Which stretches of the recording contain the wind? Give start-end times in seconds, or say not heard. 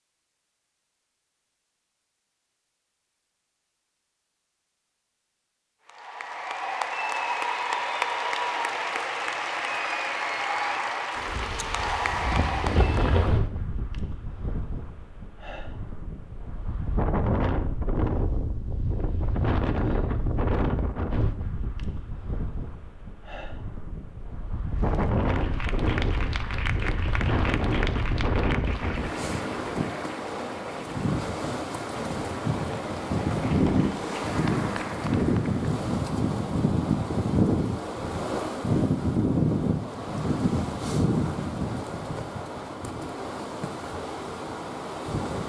11.2-45.4.